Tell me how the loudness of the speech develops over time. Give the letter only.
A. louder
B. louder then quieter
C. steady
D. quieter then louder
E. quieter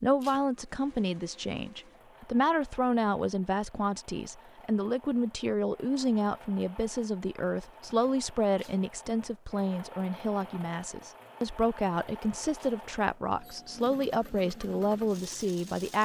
C.